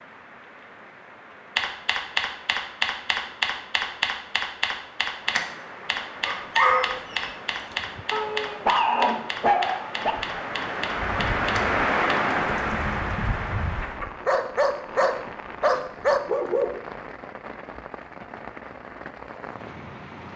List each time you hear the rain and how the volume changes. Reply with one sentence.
The rain can be heard from 0.0 to 20.3 s, getting louder then quieter.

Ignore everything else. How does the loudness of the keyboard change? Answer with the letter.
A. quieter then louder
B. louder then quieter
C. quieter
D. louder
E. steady
C.